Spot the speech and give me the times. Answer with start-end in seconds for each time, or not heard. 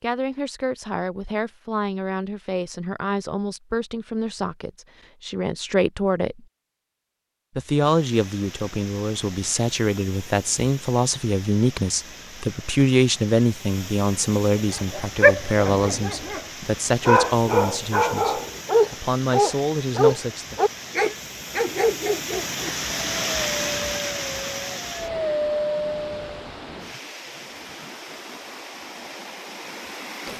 0.0-6.5, 7.5-20.6.